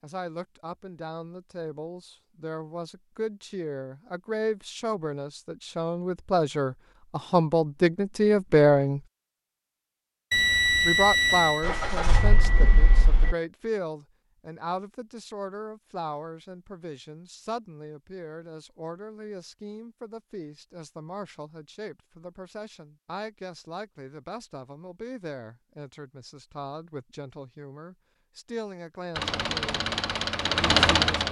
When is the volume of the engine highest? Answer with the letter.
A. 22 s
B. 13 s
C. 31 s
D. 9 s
C.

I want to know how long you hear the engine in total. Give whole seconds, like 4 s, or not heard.
4 s.